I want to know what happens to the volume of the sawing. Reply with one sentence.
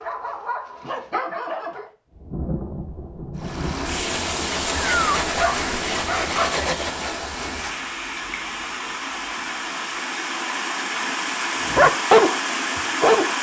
The loudness of the sawing goes down.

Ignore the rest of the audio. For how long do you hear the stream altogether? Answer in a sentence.
The stream can be heard for 10 seconds in total.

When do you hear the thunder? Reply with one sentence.
The thunder can be heard from 2.1 to 3.8 s.